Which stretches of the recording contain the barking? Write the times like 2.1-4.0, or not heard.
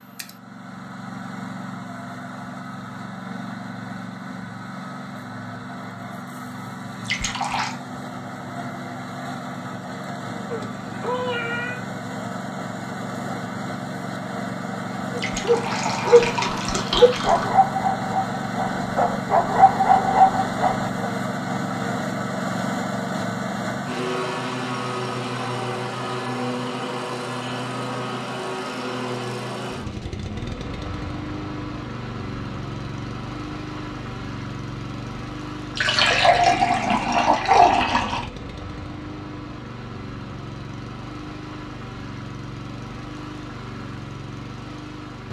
15.2-21.1.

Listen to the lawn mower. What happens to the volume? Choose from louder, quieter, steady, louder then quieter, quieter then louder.
louder then quieter.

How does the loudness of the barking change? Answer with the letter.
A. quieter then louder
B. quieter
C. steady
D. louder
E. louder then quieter
A.